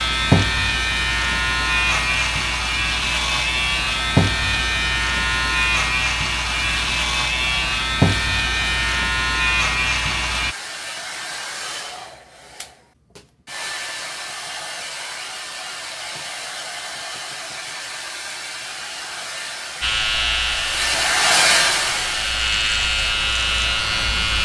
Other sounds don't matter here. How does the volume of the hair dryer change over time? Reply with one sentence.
The volume of the hair dryer goes up.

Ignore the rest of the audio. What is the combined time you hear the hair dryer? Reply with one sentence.
The hair dryer can be heard for 24 seconds in total.